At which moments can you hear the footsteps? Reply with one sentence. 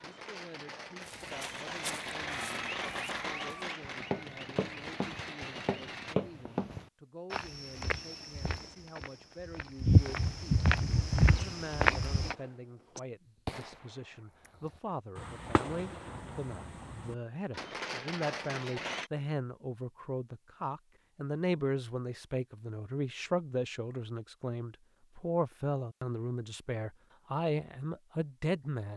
The footsteps can be heard from 1.1 to 12.3 s.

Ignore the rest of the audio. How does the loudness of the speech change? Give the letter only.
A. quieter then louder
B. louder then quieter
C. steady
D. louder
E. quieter
D.